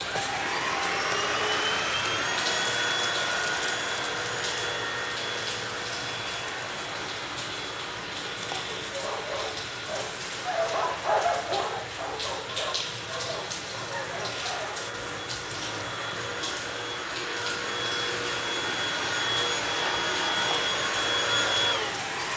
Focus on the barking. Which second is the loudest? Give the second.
11 s.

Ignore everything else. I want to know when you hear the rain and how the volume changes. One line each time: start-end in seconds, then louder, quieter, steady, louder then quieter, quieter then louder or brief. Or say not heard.
0.0-22.3 steady.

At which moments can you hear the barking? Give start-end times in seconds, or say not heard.
8.9-14.8.